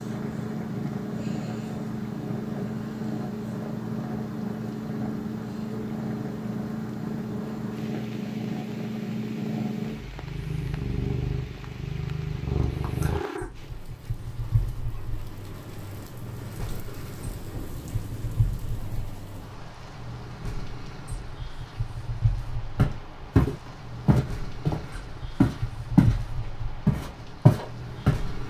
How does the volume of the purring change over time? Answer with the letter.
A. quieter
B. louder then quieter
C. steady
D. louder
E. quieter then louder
A.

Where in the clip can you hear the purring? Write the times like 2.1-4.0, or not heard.
0.0-28.4.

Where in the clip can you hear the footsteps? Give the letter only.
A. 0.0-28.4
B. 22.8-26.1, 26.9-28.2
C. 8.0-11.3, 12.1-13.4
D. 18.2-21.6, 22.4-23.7
B.